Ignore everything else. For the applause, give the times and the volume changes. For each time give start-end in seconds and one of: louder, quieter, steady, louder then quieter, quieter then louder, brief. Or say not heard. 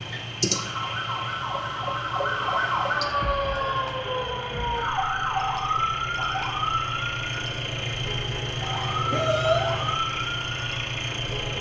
not heard.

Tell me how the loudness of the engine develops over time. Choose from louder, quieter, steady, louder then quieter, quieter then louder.
louder.